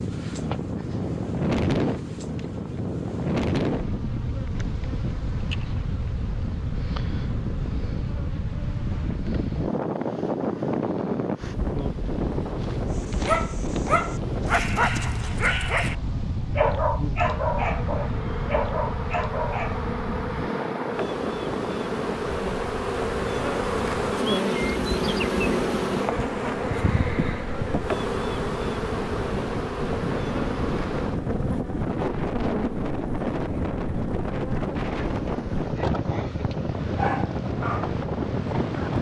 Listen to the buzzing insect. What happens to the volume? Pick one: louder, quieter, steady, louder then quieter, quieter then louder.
louder then quieter.